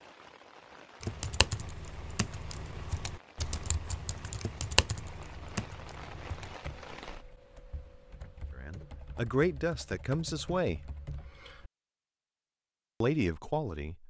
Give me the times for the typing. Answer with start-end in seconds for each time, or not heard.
1.0-11.7.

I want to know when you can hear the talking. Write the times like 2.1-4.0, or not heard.
8.6-10.9, 13.0-14.0.